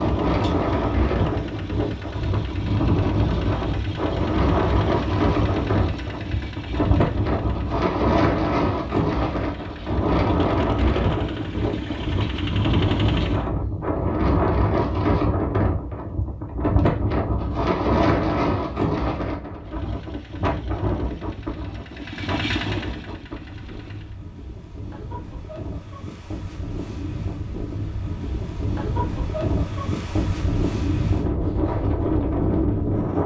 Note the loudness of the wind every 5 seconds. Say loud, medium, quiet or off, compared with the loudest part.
loud, loud, loud, loud, medium, medium, loud.